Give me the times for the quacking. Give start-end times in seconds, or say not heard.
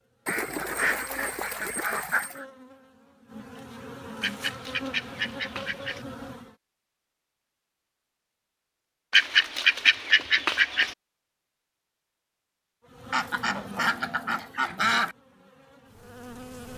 0.2-2.5, 4.2-6.0, 9.1-10.9, 13.1-15.2.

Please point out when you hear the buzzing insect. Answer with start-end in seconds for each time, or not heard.
0.0-6.5, 12.8-16.7.